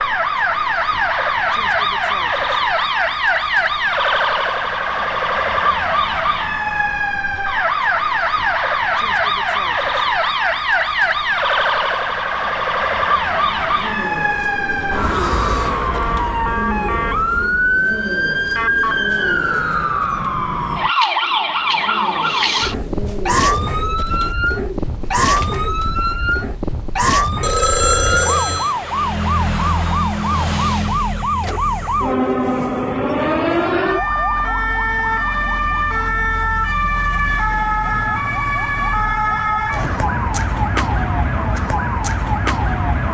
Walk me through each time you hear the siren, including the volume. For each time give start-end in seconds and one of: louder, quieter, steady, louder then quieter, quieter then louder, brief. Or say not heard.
0.0-43.0 steady.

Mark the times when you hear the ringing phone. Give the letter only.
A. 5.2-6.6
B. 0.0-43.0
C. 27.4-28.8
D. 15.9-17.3
C.